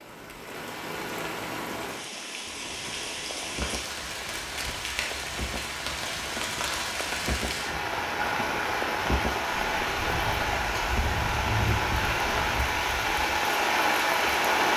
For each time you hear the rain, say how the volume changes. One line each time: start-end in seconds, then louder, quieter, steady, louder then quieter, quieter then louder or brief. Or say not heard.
0.0-14.7 louder.